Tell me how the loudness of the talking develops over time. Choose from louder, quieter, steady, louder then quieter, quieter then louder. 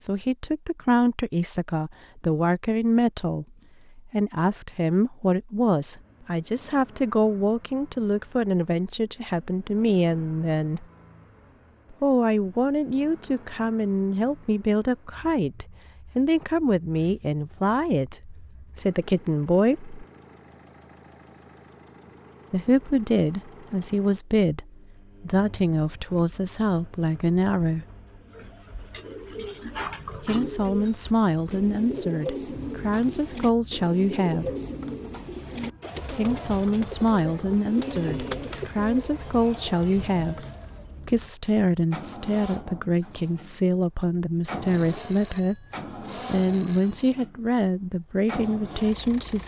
steady.